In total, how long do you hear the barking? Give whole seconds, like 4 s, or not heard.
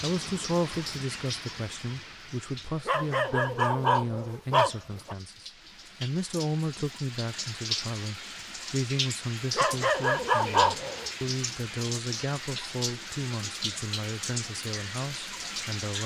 4 s.